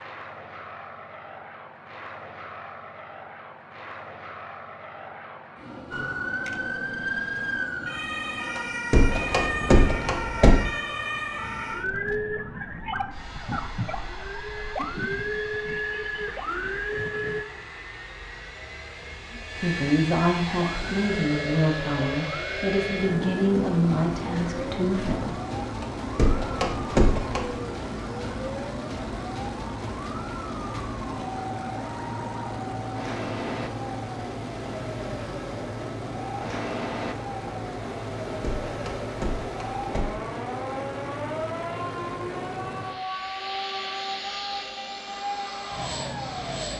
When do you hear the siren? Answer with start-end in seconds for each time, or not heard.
5.9-17.4, 20.6-46.7.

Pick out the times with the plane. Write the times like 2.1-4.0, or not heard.
0.0-46.7.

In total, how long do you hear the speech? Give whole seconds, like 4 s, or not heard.
6 s.